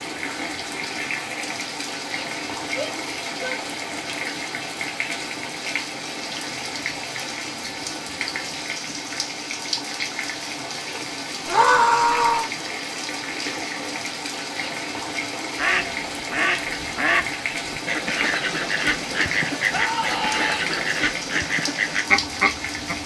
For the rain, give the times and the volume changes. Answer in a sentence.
You can hear the rain from 0.0 to 23.0 s, at a steady volume.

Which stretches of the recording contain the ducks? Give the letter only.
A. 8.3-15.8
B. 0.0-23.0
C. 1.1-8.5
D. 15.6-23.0
D.